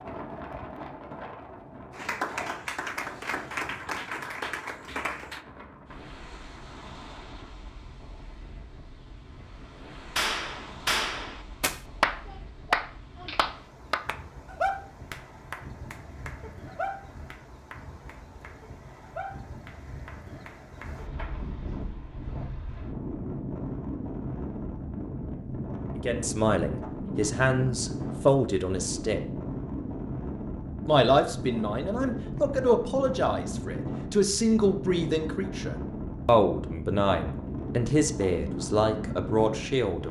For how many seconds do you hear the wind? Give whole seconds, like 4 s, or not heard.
40 s.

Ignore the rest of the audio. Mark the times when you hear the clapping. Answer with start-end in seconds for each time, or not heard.
1.9-5.4, 10.2-21.4.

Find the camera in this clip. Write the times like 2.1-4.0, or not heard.
not heard.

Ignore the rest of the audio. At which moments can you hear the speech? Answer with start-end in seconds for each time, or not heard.
25.9-29.2, 30.9-40.0.